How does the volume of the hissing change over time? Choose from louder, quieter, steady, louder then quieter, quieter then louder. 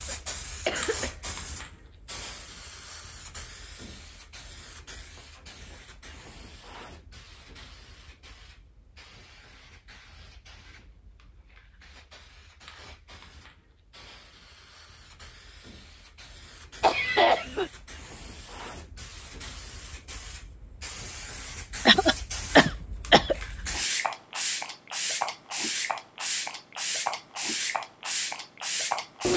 quieter then louder.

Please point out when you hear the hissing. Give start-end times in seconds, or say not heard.
0.0-29.3.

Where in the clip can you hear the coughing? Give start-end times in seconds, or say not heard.
0.1-1.1, 16.8-17.7, 21.9-23.4.